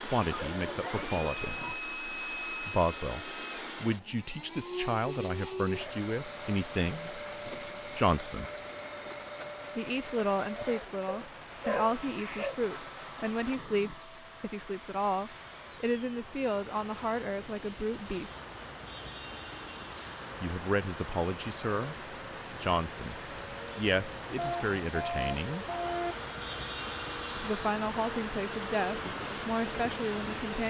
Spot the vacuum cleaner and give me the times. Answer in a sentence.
The vacuum cleaner can be heard from 0.0 to 30.6 s.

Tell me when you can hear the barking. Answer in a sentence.
You can hear the barking from 0.3 to 1.8 s, from 11.1 to 12.6 s and from 24.4 to 26.2 s.